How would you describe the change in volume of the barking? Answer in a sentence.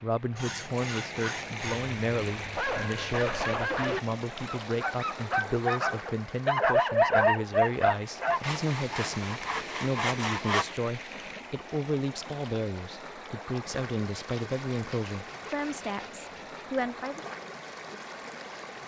The loudness of the barking goes up.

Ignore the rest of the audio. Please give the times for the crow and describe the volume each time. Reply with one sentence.
You can't hear the crow here.